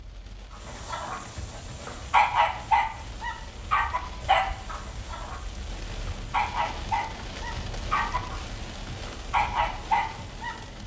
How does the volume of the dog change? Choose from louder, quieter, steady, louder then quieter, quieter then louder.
quieter then louder.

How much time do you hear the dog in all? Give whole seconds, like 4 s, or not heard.
10 s.